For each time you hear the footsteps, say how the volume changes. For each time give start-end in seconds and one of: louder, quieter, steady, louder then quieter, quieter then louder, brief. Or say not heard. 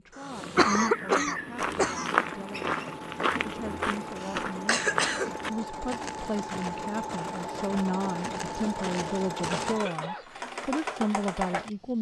0.3-9.8 quieter.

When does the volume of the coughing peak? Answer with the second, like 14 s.
1 s.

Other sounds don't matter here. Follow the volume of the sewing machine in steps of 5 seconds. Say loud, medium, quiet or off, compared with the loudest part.
medium, loud, loud.